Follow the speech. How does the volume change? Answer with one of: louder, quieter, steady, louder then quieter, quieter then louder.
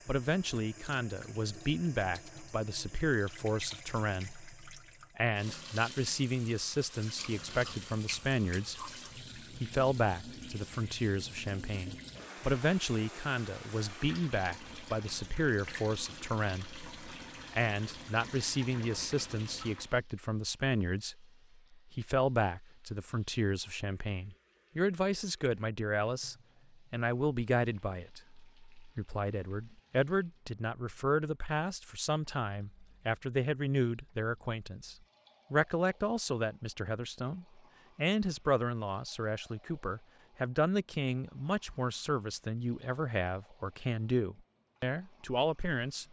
steady.